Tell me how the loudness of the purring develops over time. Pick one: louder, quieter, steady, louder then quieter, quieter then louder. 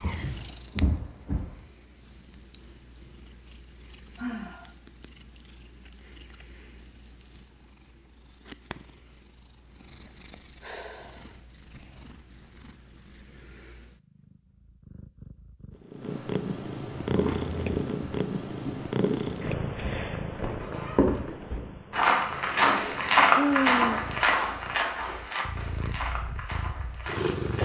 louder then quieter.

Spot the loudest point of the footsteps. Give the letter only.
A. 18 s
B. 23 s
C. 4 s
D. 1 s
B.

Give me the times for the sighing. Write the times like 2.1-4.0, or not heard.
4.2-4.7, 10.6-11.2, 23.4-24.0.